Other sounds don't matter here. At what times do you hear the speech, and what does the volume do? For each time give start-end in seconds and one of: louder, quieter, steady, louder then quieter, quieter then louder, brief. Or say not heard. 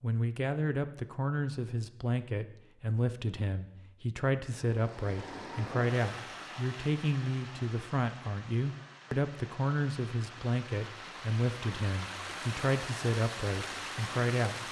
0.0-14.6 steady.